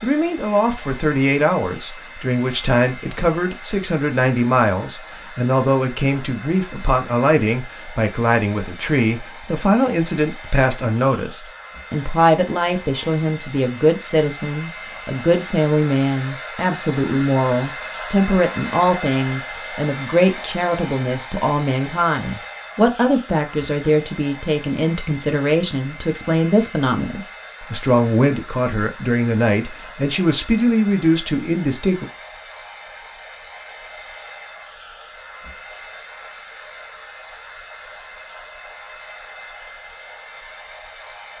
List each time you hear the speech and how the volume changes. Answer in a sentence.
You can hear the speech from 0.0 to 32.0 s, at a steady volume.